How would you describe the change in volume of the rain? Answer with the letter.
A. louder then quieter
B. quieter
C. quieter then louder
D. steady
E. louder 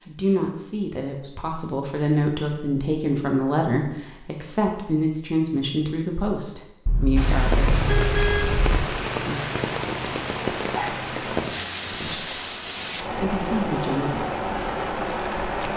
D.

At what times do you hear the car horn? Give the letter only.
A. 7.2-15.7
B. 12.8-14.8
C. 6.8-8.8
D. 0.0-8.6
C.